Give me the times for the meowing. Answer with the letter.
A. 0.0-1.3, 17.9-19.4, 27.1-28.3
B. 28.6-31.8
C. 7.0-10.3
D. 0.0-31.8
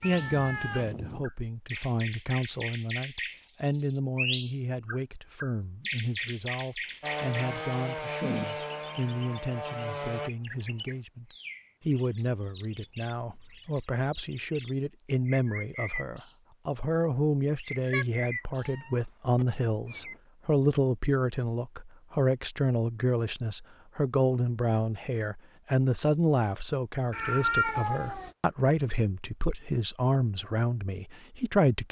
A.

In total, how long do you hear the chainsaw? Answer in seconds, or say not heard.
3 s.